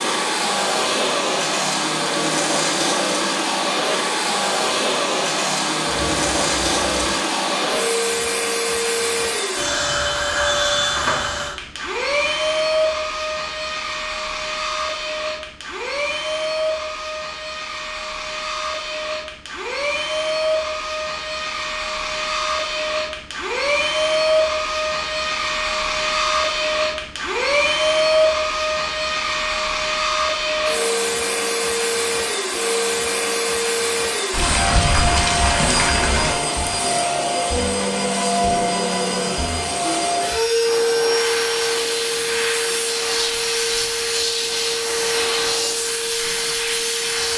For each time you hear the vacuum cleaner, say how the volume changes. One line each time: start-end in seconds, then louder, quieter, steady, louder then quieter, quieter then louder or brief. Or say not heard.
0.0-47.3 steady.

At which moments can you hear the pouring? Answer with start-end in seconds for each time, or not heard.
5.8-7.2, 34.3-36.4.